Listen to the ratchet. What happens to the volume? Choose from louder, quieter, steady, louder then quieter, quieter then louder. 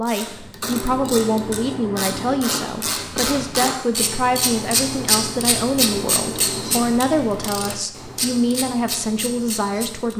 louder then quieter.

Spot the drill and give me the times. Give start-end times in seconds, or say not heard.
not heard.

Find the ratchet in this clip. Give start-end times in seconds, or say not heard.
0.0-10.1.